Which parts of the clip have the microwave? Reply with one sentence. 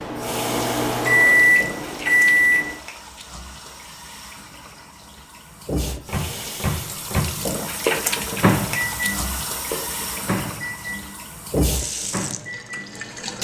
The microwave can be heard from 0.0 to 2.8 s and from 5.8 to 13.4 s.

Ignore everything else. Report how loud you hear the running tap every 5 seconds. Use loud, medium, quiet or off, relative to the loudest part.
medium, loud, loud.